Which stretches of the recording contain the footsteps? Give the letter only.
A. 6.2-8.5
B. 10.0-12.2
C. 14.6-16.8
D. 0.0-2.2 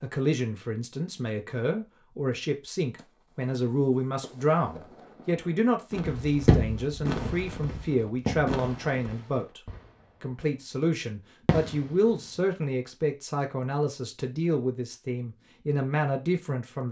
A.